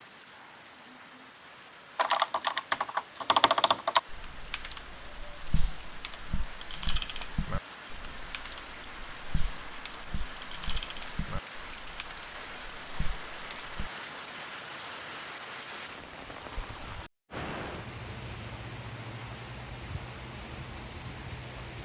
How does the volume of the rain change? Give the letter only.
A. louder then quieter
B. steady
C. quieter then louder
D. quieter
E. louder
E.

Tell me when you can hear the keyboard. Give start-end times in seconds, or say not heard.
1.9-13.9.